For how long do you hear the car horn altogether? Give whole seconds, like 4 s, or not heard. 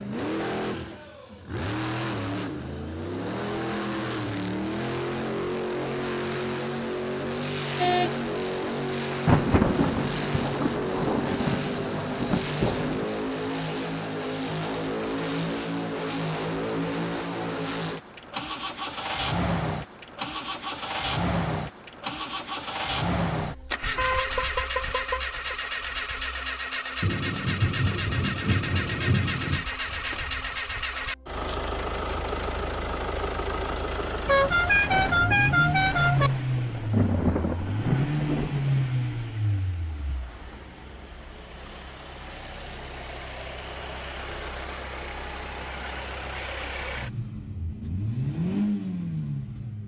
4 s.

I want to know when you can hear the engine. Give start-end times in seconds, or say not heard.
0.0-49.8.